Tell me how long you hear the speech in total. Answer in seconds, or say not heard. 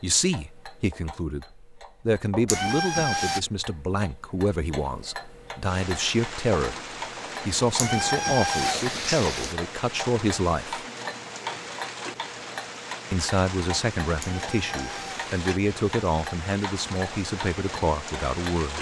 16 s.